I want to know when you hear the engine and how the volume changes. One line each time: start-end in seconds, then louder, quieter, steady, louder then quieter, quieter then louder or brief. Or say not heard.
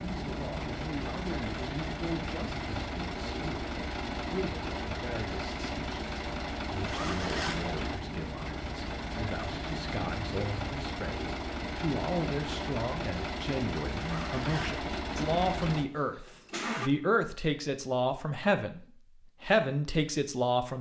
0.0-16.9 steady.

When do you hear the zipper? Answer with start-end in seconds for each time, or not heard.
6.8-7.7, 13.9-14.8.